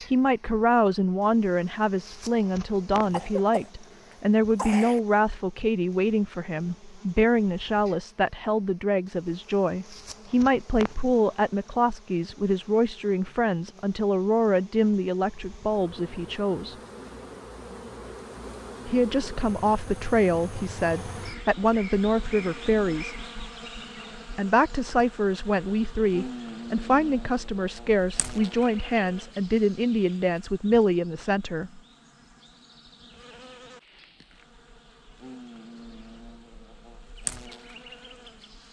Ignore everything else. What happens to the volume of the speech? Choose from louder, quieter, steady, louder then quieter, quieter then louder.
steady.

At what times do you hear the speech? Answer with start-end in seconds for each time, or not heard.
0.1-16.8, 18.9-23.1, 24.4-31.8.